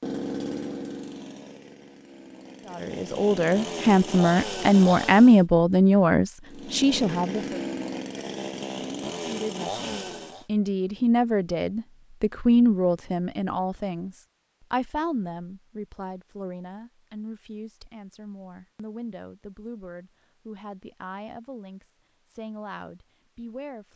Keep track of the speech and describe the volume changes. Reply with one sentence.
The volume of the speech goes down.